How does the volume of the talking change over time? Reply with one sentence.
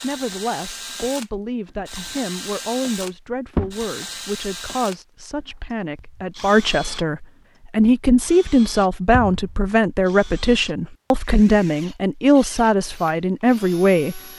The volume of the talking goes up.